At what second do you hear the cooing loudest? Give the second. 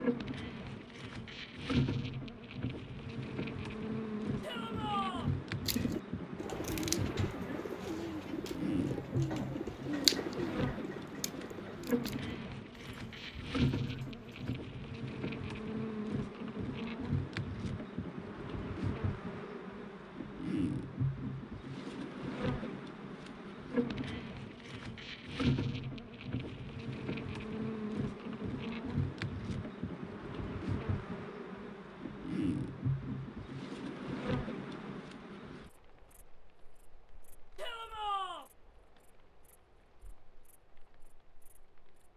10 s.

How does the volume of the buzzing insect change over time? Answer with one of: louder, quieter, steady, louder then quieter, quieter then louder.
quieter.